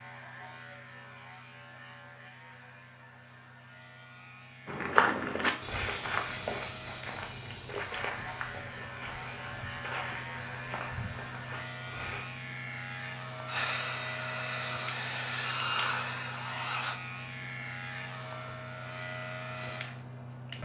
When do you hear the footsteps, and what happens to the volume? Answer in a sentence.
You can hear the footsteps from 4.7 to 12.2 s, getting quieter.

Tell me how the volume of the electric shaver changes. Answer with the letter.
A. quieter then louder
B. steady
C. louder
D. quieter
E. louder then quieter
C.